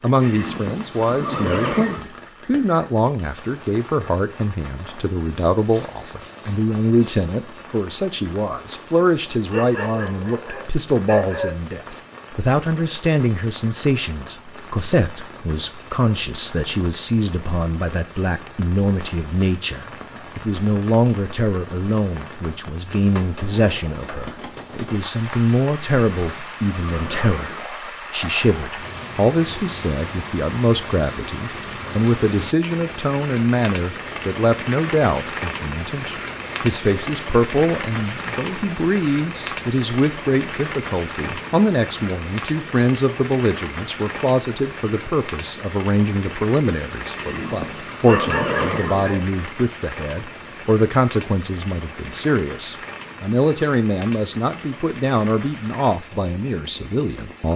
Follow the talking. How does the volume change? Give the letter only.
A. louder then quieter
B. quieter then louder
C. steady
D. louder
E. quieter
C.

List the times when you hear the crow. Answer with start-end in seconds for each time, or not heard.
not heard.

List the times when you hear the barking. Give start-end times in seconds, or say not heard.
9.5-11.6, 48.0-49.2.